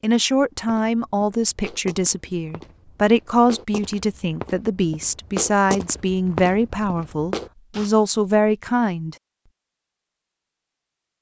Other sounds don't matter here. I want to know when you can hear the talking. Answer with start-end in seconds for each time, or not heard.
0.0-9.2.